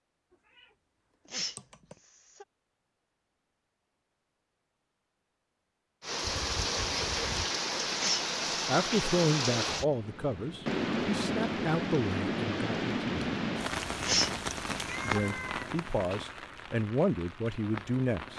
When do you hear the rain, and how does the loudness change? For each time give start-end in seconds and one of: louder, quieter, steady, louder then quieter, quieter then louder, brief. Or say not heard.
6.0-18.3 quieter.